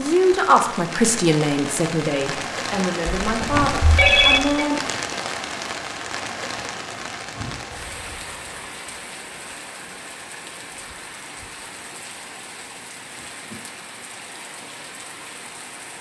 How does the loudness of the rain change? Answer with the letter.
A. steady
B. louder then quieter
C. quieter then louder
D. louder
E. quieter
E.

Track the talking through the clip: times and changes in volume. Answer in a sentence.
The talking can be heard from 0.0 to 4.9 s, getting quieter.